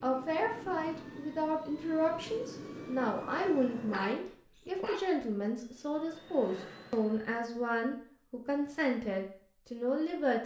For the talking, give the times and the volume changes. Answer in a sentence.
The talking can be heard from 0.0 to 10.4 s, at a steady volume.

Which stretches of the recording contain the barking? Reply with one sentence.
You can hear the barking from 3.8 to 5.5 s.